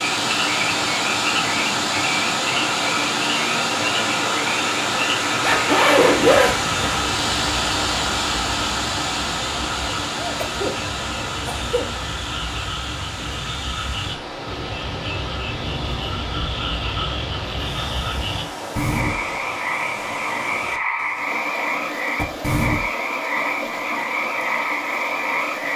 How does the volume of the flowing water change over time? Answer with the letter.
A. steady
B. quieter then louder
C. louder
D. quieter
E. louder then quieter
D.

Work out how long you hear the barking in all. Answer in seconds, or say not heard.
not heard.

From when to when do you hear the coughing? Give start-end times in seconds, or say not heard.
10.2-12.0.